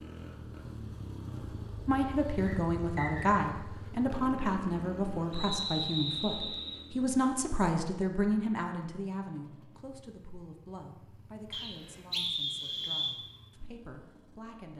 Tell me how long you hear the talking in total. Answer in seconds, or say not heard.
13 s.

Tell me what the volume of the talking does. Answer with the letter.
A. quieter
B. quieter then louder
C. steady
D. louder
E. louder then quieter
A.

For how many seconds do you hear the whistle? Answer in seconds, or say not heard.
4 s.